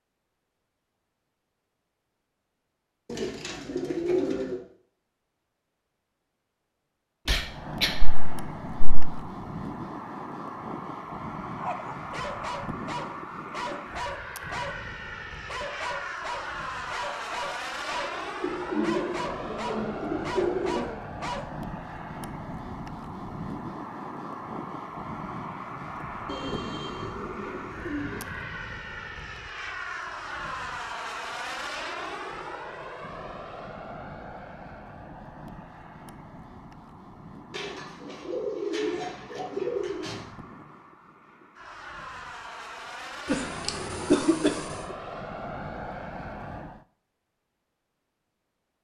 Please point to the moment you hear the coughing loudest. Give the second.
44 s.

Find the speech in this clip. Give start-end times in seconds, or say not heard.
not heard.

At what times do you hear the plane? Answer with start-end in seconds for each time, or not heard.
7.4-46.9.